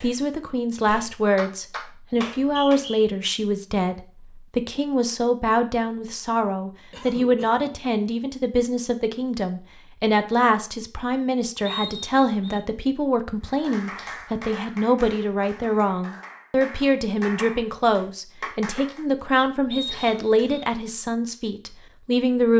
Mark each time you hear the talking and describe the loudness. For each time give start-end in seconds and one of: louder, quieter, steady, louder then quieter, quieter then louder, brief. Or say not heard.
0.0-22.5 steady.